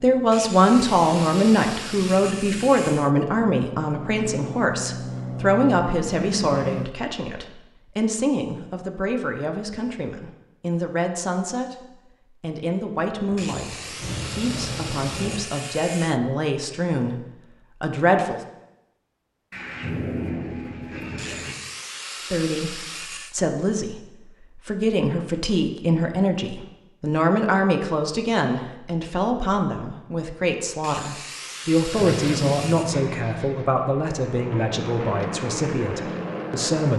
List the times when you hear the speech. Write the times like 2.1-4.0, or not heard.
0.0-17.1, 17.8-18.4, 22.1-36.9.